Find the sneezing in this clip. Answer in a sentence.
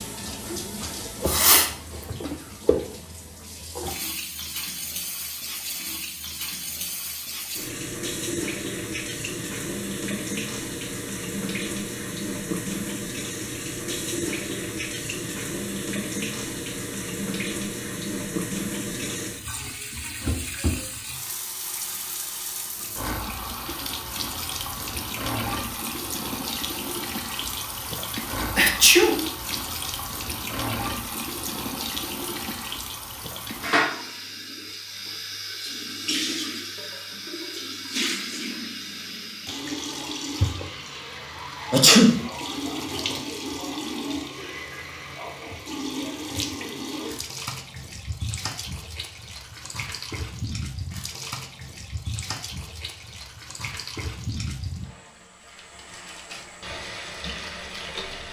You can hear the sneezing from 1.2 to 2.1 s, from 28.6 to 29.6 s and from 41.7 to 42.2 s.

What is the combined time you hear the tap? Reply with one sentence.
You can hear the tap for 58 seconds altogether.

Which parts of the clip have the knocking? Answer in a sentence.
You can't hear the knocking here.